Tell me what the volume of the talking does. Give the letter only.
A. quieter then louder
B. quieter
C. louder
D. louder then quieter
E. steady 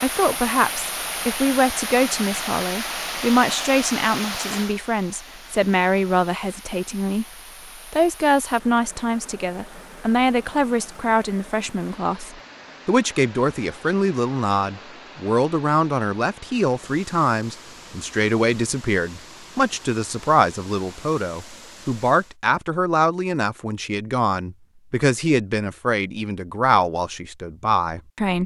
E.